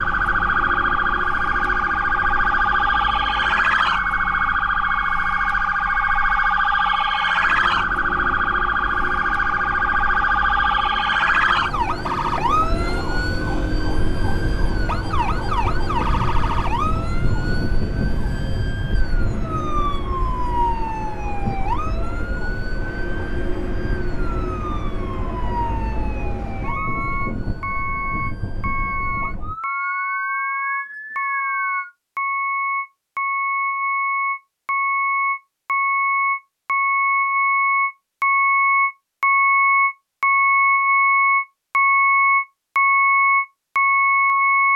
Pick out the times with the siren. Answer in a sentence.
The siren can be heard from 0.0 to 31.9 s.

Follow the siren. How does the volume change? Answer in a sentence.
The loudness of the siren goes down.